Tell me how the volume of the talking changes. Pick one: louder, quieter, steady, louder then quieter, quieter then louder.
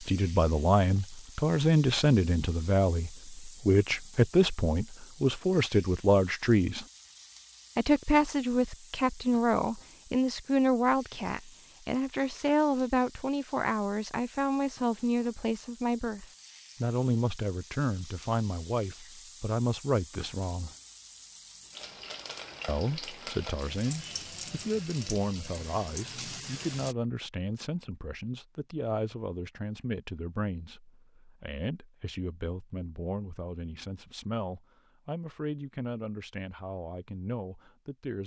quieter.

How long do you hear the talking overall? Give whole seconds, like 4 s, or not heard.
35 s.